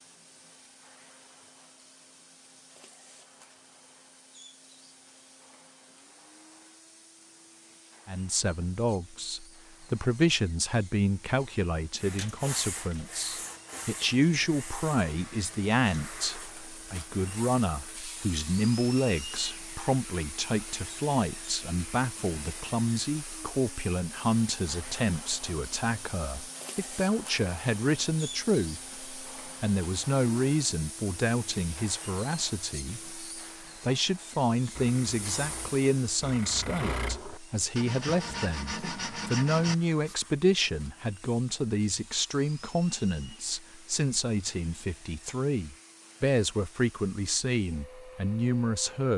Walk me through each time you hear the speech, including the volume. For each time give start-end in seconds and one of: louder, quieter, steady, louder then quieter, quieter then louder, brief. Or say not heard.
8.1-49.1 steady.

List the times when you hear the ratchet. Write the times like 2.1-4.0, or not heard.
not heard.